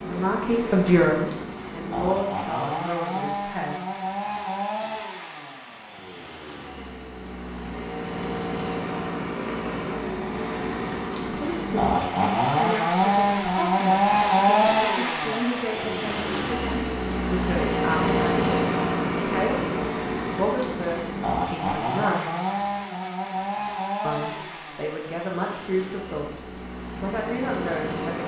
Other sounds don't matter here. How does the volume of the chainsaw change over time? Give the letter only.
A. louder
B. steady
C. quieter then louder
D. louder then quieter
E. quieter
D.